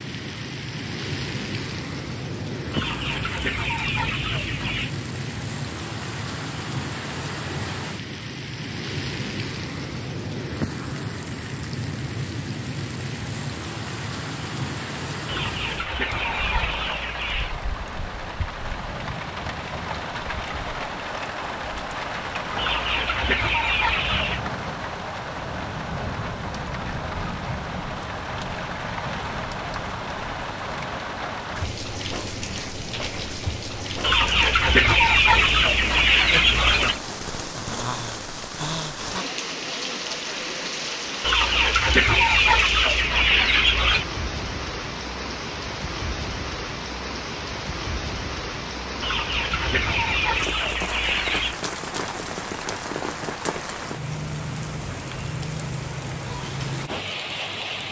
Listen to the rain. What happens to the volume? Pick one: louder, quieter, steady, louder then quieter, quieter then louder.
steady.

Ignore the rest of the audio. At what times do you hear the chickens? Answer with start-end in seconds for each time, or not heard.
2.7-4.9, 15.2-17.6, 22.6-24.4, 34.0-37.0, 41.2-44.0, 49.0-51.6.